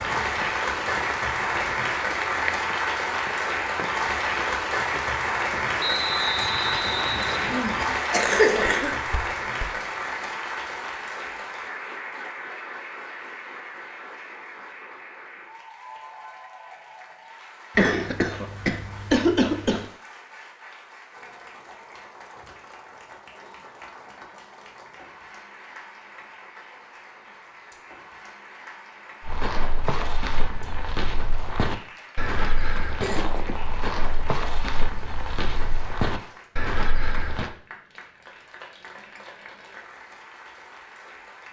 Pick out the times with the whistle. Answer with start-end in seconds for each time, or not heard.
5.8-7.7.